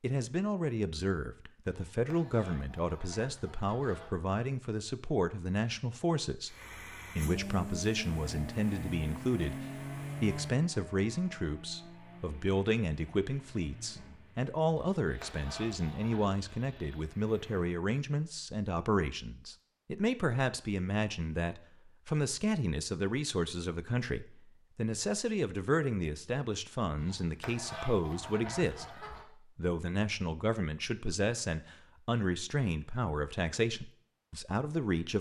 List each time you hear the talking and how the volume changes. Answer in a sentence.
The talking can be heard from 0.0 to 6.5 s, at a steady volume; and from 7.2 to 35.1 s, at a steady volume.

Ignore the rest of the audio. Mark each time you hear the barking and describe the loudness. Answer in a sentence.
The barking can't be heard in this clip.